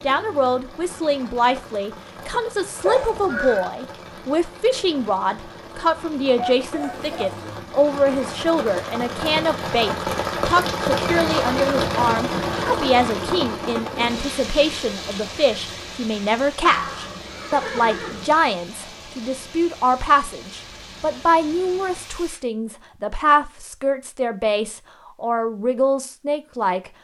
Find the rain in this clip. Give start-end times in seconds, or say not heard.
0.0-22.4.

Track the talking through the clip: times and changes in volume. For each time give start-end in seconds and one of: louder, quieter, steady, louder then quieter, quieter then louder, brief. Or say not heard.
0.0-26.9 steady.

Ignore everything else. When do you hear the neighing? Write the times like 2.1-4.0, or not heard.
2.9-3.6, 16.6-18.4.